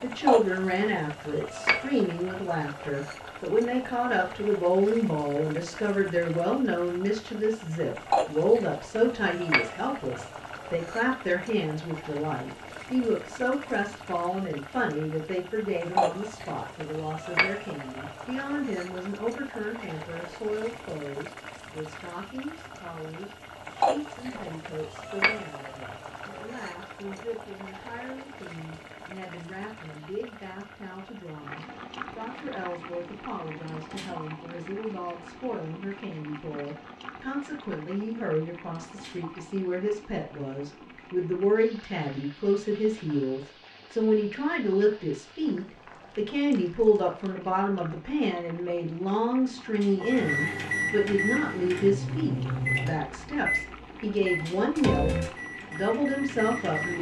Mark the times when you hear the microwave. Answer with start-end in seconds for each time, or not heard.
50.0-56.9.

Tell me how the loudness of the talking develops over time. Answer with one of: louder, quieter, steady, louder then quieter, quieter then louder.
quieter then louder.